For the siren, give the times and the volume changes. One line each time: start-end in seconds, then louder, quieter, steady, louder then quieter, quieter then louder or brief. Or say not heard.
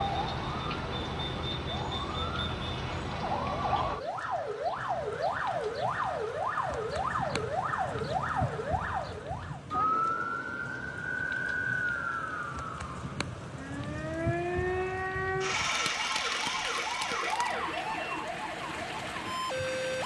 0.0-20.0 steady.